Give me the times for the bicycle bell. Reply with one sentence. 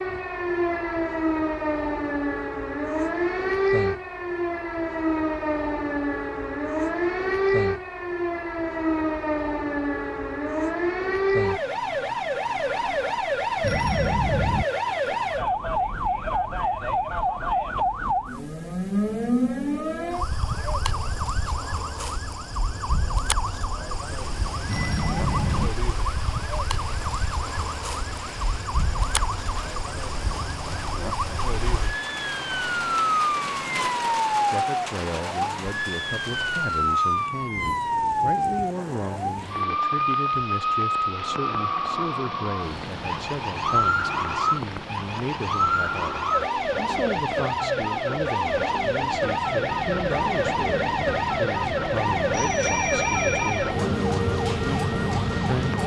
You can hear the bicycle bell from 13.6 to 14.7 s, from 24.6 to 25.7 s and from 52.3 to 53.7 s.